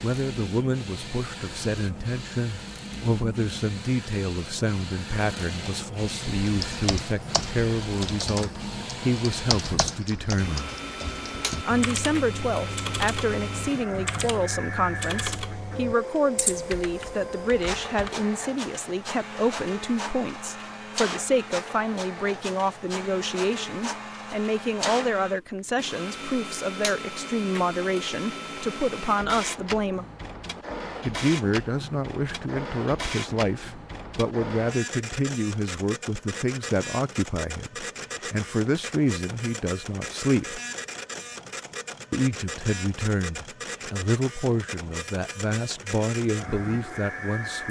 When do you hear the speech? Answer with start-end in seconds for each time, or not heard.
0.0-10.7, 11.7-30.1, 31.0-40.6, 42.1-47.6.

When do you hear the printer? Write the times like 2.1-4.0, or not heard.
0.0-47.6.